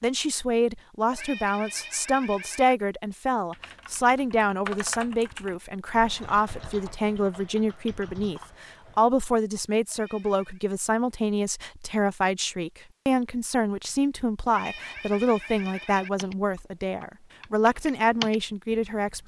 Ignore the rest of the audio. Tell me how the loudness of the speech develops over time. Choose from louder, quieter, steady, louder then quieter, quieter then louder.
steady.